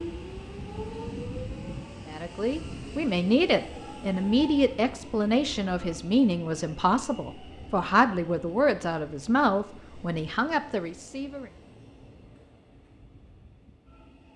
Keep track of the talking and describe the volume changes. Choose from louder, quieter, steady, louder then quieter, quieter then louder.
steady.